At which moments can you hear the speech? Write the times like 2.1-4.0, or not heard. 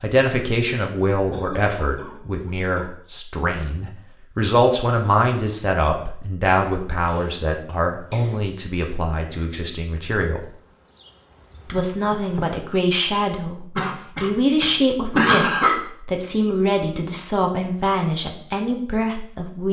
0.0-10.6, 11.7-19.6.